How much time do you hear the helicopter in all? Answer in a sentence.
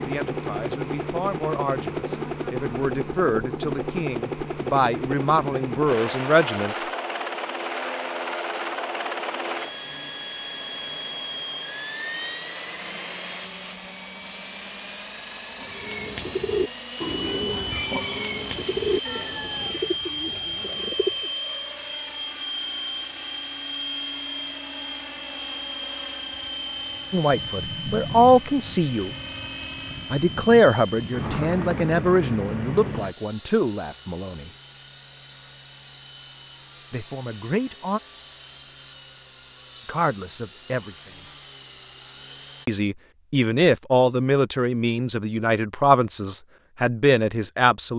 The helicopter can be heard for 43 seconds in total.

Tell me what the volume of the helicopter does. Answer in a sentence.
The loudness of the helicopter stays about the same.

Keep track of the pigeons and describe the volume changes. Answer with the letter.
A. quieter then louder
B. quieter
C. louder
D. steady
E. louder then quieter
B.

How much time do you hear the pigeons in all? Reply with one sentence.
You can hear the pigeons for 6 seconds altogether.